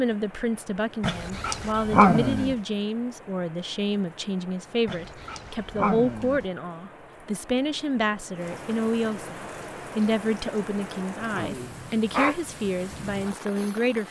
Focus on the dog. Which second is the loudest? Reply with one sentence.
The loudest moment of the dog is at 2 seconds.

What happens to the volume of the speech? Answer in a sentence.
The loudness of the speech stays about the same.